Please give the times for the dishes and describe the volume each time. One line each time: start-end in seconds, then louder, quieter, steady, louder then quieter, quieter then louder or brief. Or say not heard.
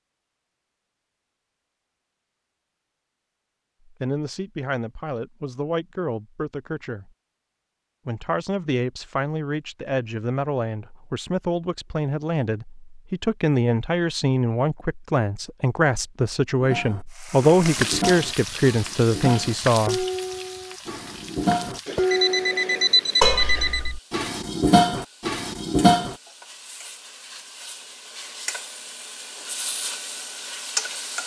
16.6-26.1 louder.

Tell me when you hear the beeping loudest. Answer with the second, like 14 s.
23 s.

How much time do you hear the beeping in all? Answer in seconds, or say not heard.
2 s.